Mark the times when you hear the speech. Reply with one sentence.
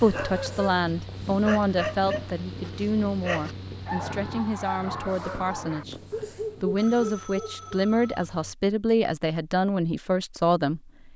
You can hear the speech from 0.0 to 6.0 s and from 6.6 to 11.1 s.